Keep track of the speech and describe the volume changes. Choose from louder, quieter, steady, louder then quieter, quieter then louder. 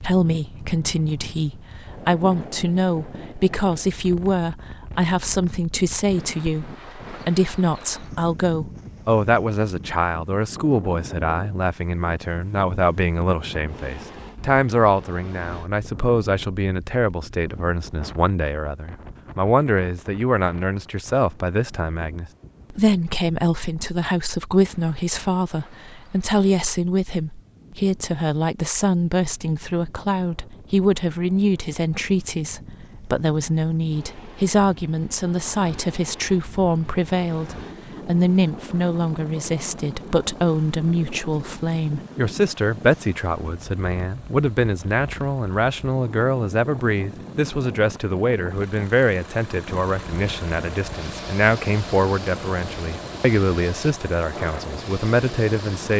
steady.